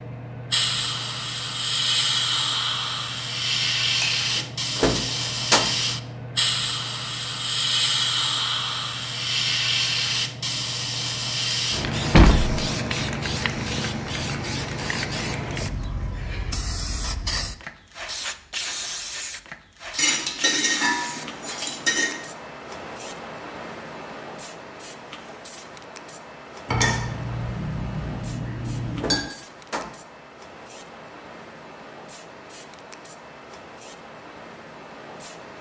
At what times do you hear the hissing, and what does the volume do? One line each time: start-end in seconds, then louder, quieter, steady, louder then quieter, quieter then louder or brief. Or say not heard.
0.0-35.5 quieter.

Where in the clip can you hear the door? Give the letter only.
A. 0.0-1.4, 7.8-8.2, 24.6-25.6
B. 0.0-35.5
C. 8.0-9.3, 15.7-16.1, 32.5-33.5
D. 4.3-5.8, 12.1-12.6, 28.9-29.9
D.